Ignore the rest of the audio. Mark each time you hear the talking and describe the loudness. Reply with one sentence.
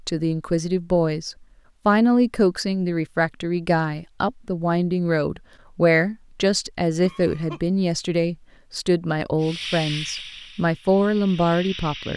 You can hear the talking from 0.0 to 12.1 s, at a steady volume.